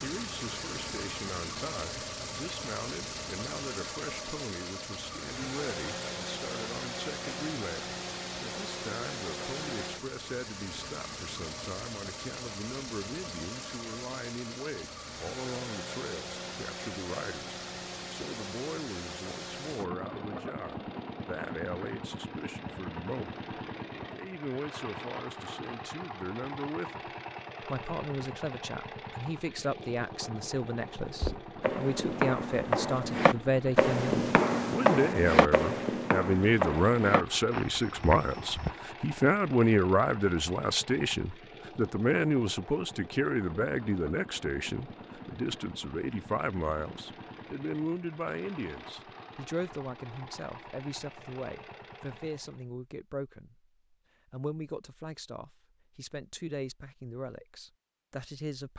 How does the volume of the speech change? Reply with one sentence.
The volume of the speech goes up, then down.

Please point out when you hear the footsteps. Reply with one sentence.
The footsteps can be heard from 31.0 to 38.8 s.